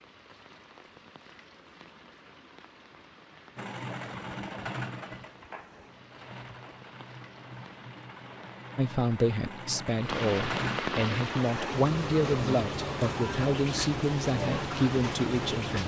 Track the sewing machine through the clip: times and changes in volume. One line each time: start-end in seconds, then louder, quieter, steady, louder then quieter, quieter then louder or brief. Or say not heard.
3.5-10.8 quieter then louder.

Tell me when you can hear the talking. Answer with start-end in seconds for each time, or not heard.
8.8-15.8.